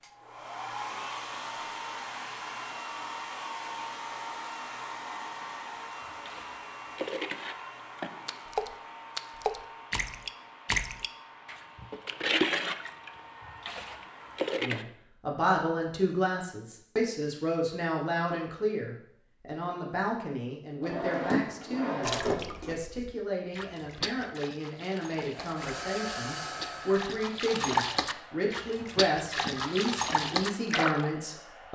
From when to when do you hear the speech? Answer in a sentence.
The speech can be heard from 14.6 to 31.6 s.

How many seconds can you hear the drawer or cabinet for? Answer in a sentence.
You can hear the drawer or cabinet for 2 seconds altogether.